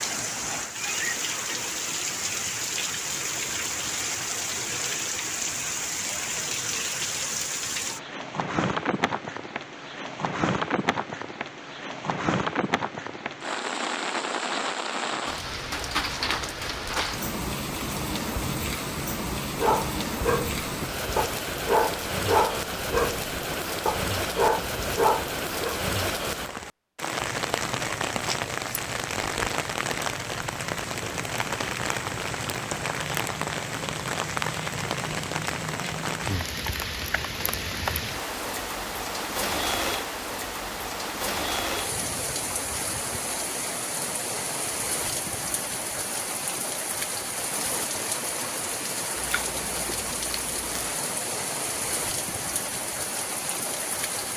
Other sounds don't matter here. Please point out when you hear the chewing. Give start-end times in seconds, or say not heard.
49.1-51.0.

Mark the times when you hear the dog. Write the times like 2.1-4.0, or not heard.
19.6-25.8.